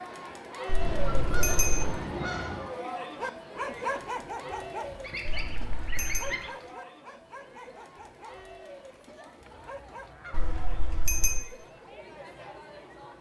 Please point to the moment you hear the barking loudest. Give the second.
4 s.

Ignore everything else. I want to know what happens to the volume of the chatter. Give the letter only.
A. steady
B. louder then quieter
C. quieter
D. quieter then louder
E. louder
C.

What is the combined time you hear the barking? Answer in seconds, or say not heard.
7 s.